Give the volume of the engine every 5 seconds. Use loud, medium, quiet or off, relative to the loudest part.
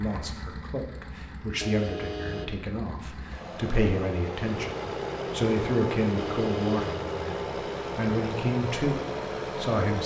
medium, loud.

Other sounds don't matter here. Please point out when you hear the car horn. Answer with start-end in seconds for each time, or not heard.
1.6-2.6, 6.2-7.1.